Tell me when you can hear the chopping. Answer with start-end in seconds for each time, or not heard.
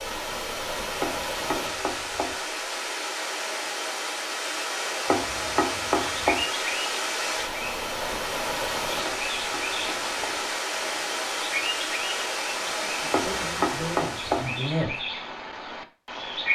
1.0-2.4, 5.0-6.5, 9.1-10.4, 13.1-14.5.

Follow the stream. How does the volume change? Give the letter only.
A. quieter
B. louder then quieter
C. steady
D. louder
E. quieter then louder
C.